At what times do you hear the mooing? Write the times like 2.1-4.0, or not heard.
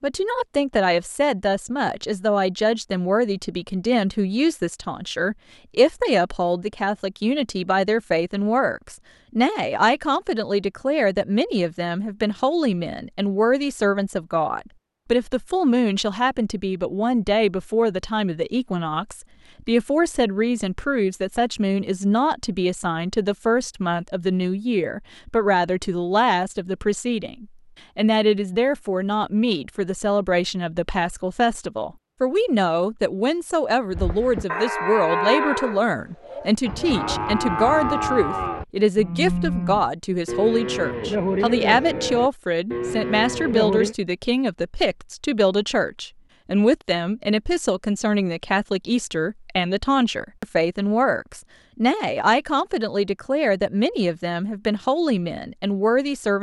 33.9-44.0.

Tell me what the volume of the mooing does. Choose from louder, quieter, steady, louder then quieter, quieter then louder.
steady.